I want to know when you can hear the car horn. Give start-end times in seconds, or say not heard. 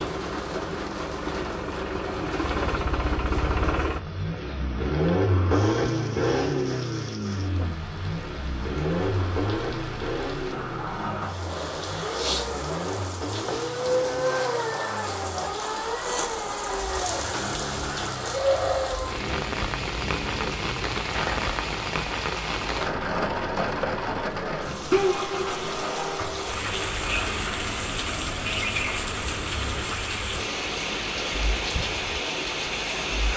not heard.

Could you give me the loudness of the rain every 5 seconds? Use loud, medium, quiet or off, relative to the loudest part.
medium, medium, loud, loud, loud, loud, loud.